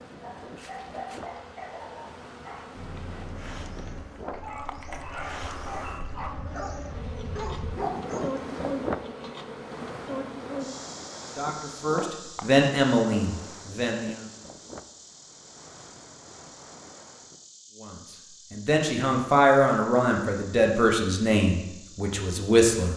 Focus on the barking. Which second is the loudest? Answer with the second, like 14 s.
8 s.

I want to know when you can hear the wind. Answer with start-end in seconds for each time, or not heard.
0.0-17.4.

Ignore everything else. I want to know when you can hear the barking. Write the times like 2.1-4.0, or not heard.
0.2-8.5.